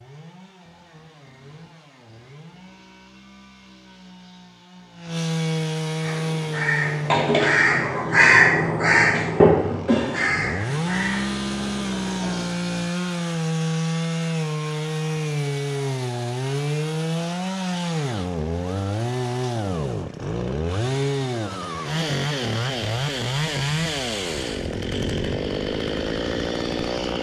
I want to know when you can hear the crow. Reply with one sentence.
The crow can be heard from 6.0 to 12.5 s.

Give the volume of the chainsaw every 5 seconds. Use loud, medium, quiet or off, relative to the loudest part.
quiet, loud, loud, loud, loud, loud.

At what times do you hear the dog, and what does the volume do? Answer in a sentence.
You can't hear the dog here.